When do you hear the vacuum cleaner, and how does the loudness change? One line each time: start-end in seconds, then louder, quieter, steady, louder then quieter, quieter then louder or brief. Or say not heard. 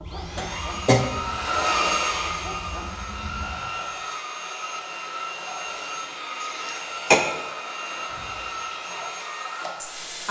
0.0-10.2 quieter.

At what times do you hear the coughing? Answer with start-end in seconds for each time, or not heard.
0.3-1.1, 6.4-7.2.